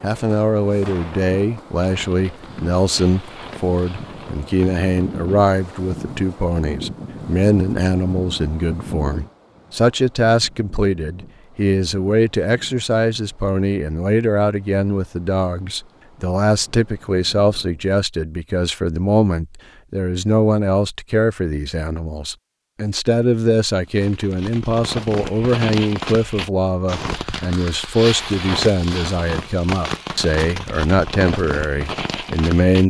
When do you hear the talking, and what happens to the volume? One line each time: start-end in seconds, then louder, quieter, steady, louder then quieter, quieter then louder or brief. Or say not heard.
0.0-32.8 steady.